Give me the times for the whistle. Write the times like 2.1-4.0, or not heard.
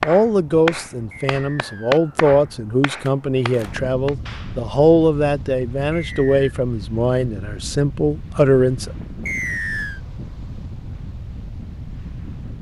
1.1-2.2, 5.9-6.5, 9.2-10.0.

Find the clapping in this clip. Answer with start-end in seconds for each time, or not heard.
0.0-4.7.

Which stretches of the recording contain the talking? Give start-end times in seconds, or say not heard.
0.0-8.9.